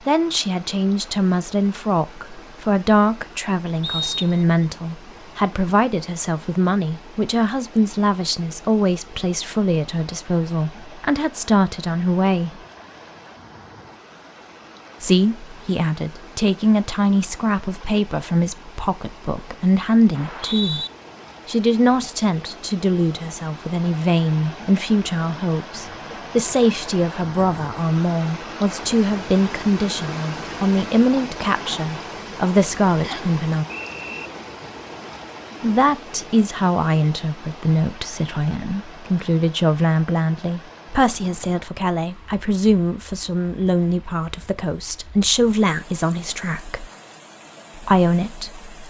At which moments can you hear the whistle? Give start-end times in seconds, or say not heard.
3.8-4.3, 20.1-20.9, 33.0-34.3.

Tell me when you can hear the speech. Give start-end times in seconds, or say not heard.
0.1-12.6, 15.0-20.9, 21.4-33.6, 35.6-46.9, 47.8-48.6.